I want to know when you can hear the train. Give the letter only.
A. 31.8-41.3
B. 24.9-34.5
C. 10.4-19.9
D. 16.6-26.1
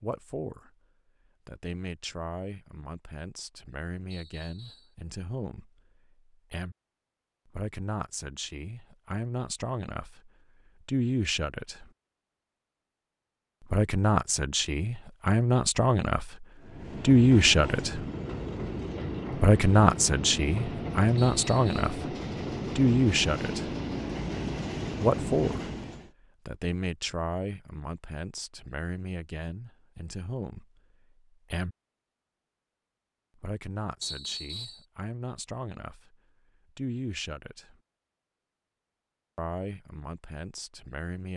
D.